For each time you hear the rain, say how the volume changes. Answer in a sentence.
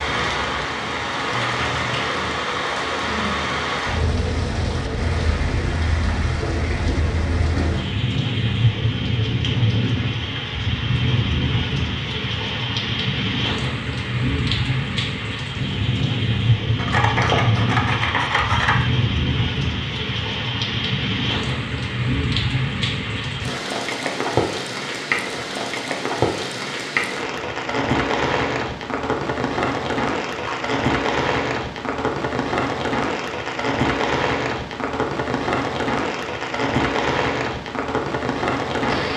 The rain can be heard from 0.0 to 39.1 s, at a steady volume.